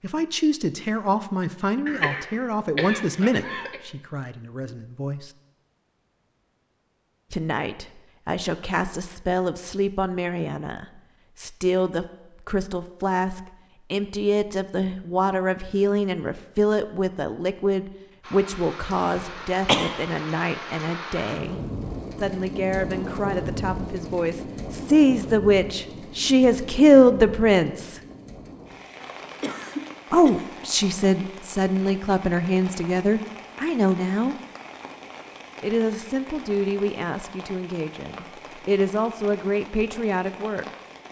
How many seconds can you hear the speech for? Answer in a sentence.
You can hear the speech for 35 seconds altogether.